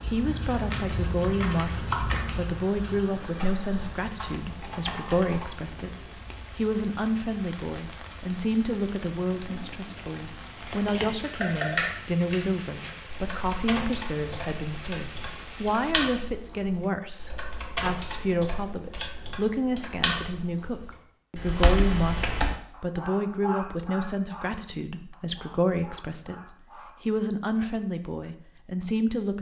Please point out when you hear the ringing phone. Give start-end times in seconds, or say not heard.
not heard.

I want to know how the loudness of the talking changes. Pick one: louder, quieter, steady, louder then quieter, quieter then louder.
steady.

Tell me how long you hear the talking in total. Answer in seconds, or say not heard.
29 s.